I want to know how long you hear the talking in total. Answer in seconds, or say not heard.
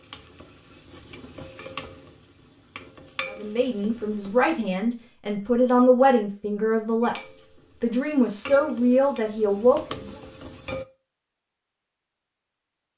7 s.